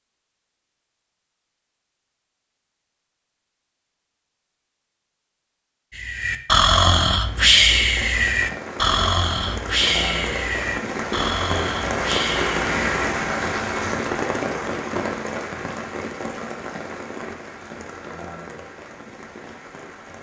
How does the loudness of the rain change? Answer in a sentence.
The loudness of the rain goes up, then down.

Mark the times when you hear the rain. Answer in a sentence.
The rain can be heard from 7.2 to 20.1 s.